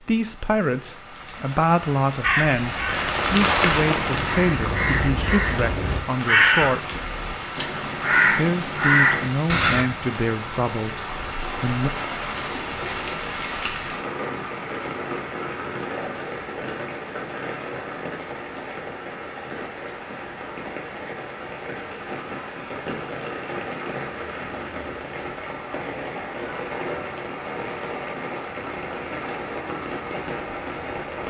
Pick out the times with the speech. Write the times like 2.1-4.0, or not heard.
0.0-7.0, 8.3-11.9.